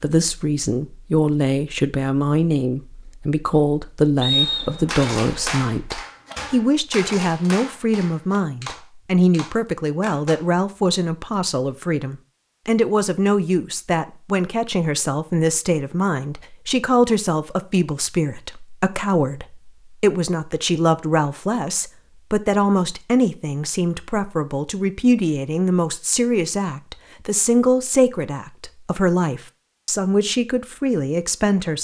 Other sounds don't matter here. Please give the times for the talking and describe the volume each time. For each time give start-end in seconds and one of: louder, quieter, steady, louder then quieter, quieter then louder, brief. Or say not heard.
0.0-31.8 steady.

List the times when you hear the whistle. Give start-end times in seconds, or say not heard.
4.2-5.1.